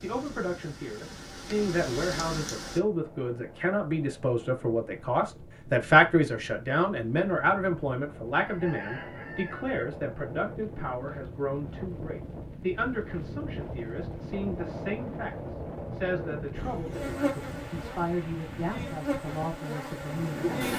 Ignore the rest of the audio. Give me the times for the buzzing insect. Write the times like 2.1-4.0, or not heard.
0.0-2.8, 16.6-20.7.